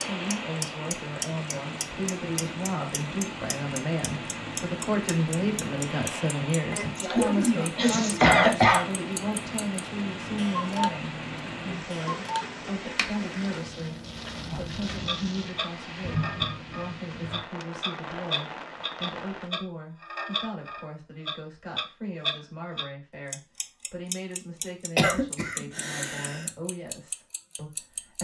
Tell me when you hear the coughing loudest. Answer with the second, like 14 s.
8 s.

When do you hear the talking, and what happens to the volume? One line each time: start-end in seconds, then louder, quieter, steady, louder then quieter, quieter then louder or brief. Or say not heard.
0.1-28.1 quieter.